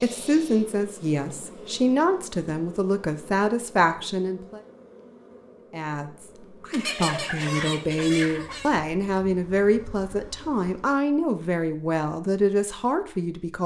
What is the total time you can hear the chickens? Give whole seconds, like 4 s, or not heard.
2 s.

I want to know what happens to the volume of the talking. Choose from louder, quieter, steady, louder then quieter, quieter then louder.
steady.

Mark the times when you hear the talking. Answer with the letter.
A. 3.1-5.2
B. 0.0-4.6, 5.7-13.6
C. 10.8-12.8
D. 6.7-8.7
B.